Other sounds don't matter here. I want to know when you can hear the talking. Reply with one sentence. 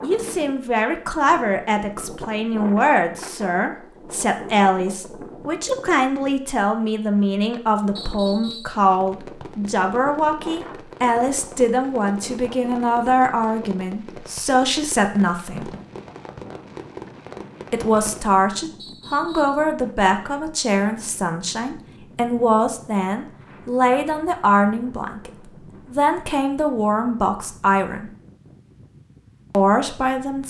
You can hear the talking from 0.0 to 15.7 s, from 17.7 to 25.3 s, from 25.9 to 28.1 s and from 29.5 to 30.4 s.